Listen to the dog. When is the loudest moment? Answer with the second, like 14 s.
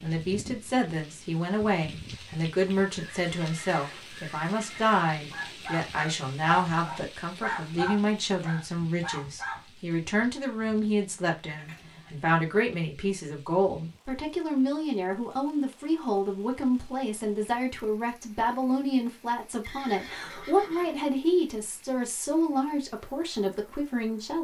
8 s.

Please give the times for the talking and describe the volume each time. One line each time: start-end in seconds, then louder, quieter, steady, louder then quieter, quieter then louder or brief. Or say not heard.
0.0-24.3 steady.